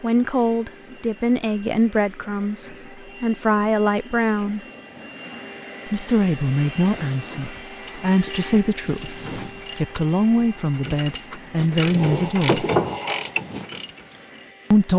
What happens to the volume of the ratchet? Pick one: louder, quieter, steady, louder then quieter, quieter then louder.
louder.